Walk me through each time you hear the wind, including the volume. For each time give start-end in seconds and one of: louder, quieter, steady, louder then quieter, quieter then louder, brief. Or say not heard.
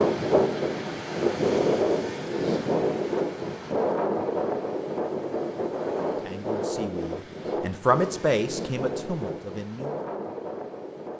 0.0-11.1 quieter.